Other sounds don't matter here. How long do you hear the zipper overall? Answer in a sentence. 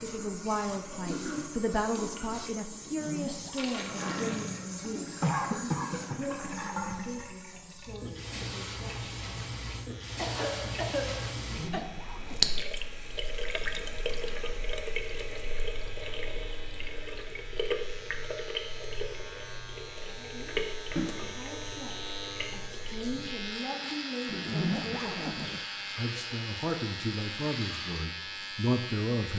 You can hear the zipper for 4 seconds altogether.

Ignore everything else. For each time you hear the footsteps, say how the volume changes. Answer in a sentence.
You can't hear the footsteps here.